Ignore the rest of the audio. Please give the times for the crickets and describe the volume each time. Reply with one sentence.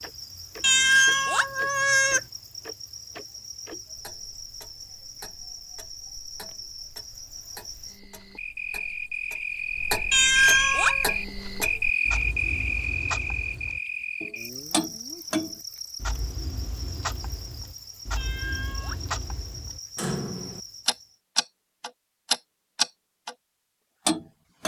The crickets can be heard from 0.0 to 21.1 s, getting louder then quieter.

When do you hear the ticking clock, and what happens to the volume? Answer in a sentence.
The ticking clock can be heard from 0.0 to 23.4 s, getting quieter then louder; and briefly from 24.1 to 24.6 s.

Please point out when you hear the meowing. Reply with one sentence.
You can hear the meowing from 0.6 to 2.2 s, from 10.1 to 11.2 s and from 18.1 to 19.0 s.